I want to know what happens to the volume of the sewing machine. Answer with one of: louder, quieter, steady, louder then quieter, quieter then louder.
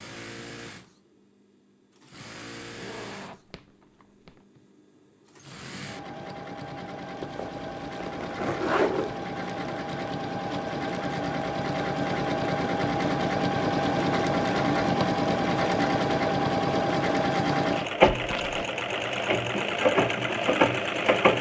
louder.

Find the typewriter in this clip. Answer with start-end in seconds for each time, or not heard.
not heard.